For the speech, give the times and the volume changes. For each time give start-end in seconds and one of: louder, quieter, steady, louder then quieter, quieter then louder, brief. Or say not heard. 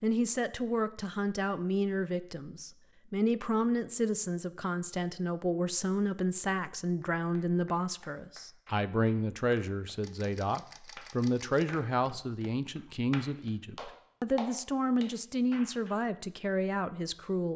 0.0-17.5 steady.